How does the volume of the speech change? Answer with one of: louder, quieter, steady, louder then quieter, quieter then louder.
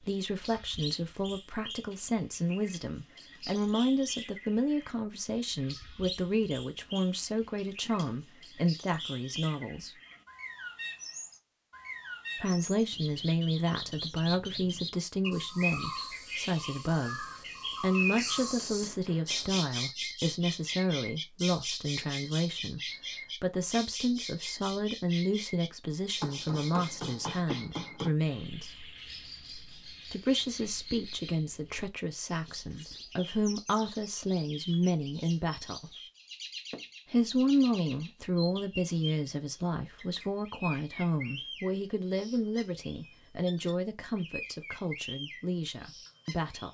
steady.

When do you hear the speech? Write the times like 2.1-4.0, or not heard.
0.0-9.9, 12.3-28.9, 30.1-36.0, 37.0-46.6.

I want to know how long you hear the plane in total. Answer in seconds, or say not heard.
not heard.